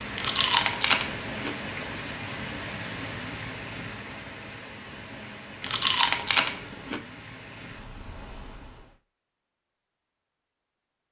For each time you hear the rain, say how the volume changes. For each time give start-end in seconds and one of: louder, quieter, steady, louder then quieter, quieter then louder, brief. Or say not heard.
0.0-8.9 quieter.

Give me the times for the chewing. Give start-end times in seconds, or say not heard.
0.1-1.6, 5.6-7.0.